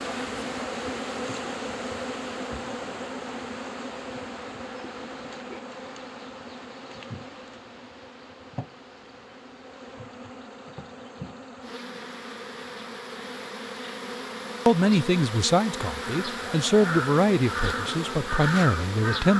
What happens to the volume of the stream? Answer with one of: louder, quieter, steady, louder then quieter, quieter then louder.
quieter.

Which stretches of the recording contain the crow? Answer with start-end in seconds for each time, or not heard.
15.9-19.3.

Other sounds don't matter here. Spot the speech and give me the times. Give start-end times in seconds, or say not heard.
14.7-19.3.